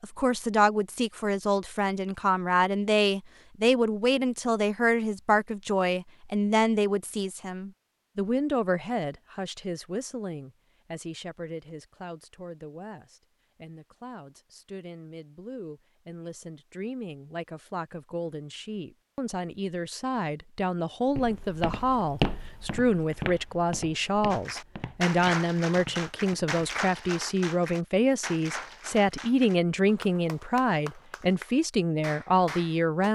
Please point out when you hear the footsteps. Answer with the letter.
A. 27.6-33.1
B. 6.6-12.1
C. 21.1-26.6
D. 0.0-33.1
C.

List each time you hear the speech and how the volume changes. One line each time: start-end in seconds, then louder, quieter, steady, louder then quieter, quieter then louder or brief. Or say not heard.
0.0-33.1 quieter then louder.